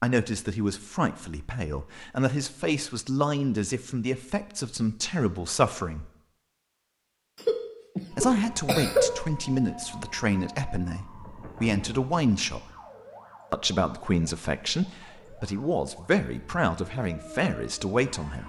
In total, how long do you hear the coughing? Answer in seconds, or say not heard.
2 s.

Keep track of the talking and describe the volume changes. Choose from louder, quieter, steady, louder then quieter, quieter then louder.
steady.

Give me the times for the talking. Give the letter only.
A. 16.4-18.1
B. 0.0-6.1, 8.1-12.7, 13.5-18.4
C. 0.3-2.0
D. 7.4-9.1
B.